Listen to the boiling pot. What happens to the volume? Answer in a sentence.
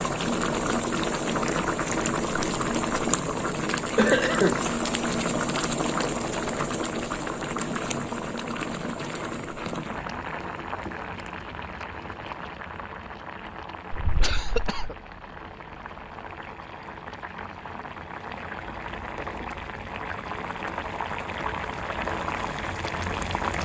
The loudness of the boiling pot goes down, then up.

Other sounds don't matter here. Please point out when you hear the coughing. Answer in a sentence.
You can hear the coughing from 4.0 to 4.6 s and from 13.9 to 14.9 s.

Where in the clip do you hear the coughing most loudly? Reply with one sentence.
The volume of the coughing peaks at 4 seconds.